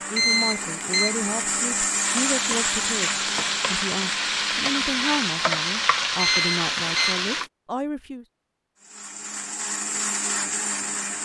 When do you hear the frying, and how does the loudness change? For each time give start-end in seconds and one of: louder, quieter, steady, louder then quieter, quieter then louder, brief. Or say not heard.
1.9-7.5 steady.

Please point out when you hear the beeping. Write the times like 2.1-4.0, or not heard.
0.1-1.8, 6.2-7.5.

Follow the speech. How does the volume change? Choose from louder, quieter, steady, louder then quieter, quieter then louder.
steady.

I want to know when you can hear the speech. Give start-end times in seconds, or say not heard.
0.1-8.2.